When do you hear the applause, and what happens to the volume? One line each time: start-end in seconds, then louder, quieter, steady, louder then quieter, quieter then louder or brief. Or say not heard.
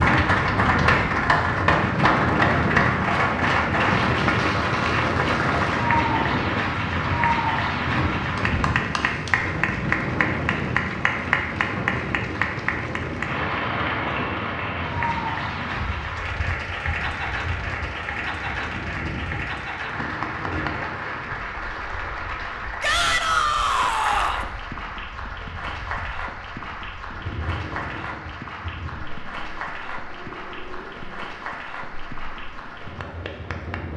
0.0-33.9 quieter.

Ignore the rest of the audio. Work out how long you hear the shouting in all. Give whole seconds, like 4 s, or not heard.
2 s.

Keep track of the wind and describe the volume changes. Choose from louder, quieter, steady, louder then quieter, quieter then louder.
quieter.